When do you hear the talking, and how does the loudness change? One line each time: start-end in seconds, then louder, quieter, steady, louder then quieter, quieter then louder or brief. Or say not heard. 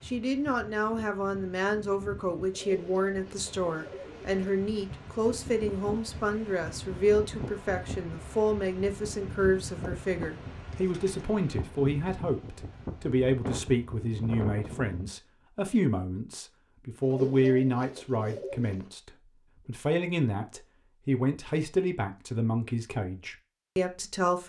0.0-24.4 steady.